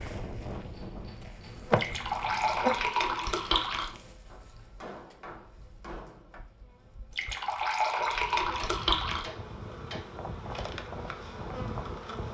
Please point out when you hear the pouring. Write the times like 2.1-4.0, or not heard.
1.8-4.0, 7.1-9.2.